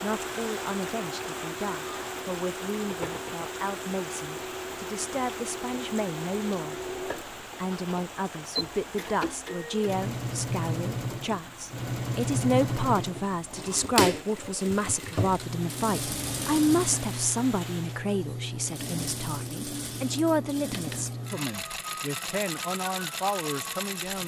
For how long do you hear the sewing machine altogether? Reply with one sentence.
You can hear the sewing machine for 24 seconds altogether.